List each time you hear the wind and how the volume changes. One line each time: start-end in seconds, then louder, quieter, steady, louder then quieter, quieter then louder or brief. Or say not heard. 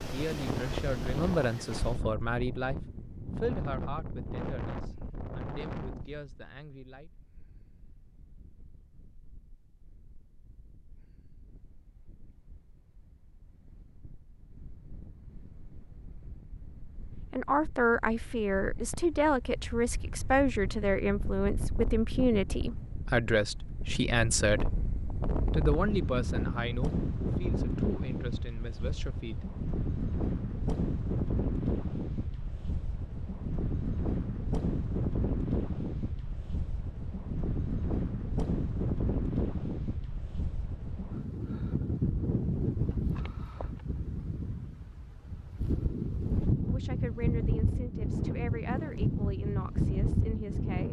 0.0-50.8 quieter then louder.